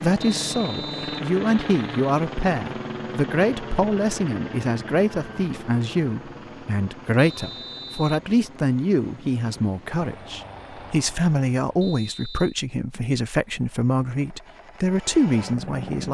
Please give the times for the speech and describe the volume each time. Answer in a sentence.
The speech can be heard from 0.0 to 16.0 s, at a steady volume.